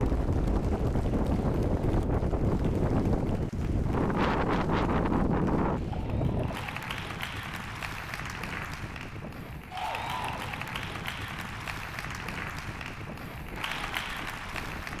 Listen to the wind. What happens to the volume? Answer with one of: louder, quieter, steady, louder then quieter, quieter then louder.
quieter.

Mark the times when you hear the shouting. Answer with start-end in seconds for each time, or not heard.
not heard.